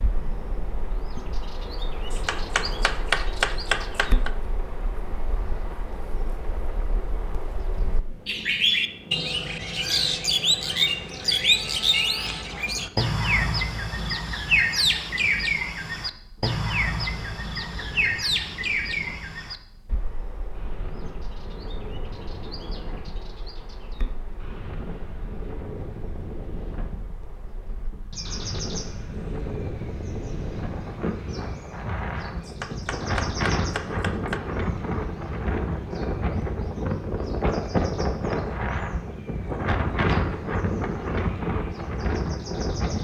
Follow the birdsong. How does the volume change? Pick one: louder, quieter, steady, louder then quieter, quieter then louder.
louder then quieter.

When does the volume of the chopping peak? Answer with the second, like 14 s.
3 s.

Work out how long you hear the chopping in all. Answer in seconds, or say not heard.
4 s.